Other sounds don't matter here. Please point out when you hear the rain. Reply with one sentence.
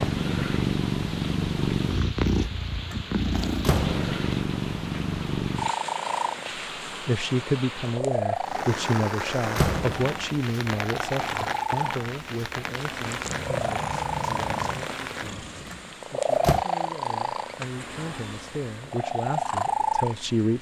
The rain can be heard from 0.0 to 15.9 s.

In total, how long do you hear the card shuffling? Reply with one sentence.
You can hear the card shuffling for 2 seconds altogether.